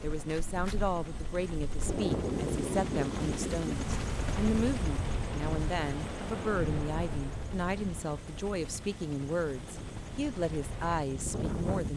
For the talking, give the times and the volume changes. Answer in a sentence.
You can hear the talking from 0.0 to 11.9 s, at a steady volume.